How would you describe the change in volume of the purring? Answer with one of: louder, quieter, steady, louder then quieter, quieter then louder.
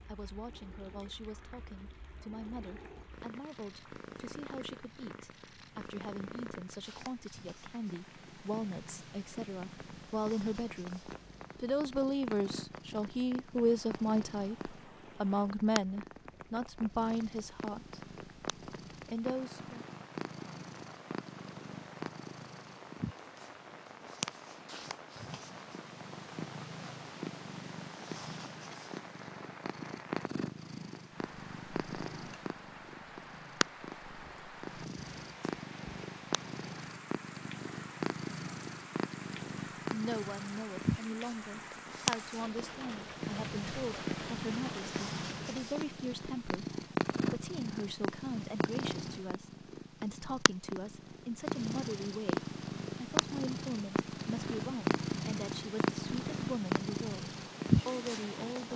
louder.